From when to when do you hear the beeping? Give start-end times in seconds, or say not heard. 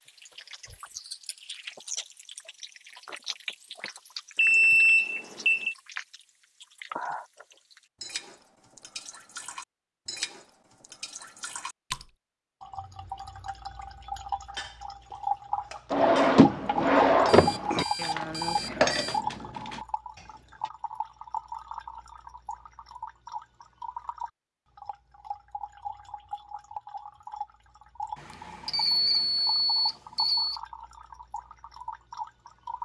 4.3-5.8, 17.2-19.2, 28.2-30.6.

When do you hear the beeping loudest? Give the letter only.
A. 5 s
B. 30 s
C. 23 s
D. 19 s
A.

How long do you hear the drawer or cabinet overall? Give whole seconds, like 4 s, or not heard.
2 s.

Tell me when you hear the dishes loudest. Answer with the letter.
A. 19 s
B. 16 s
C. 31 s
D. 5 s
A.